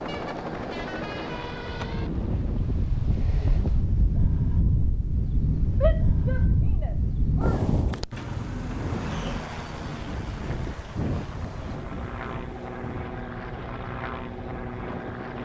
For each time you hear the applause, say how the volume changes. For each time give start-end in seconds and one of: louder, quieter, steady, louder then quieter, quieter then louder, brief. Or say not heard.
not heard.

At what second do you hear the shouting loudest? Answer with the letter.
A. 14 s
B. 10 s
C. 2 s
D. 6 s
D.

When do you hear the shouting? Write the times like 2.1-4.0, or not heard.
5.8-7.6.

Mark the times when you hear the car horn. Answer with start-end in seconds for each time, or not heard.
0.1-2.1, 8.1-9.4.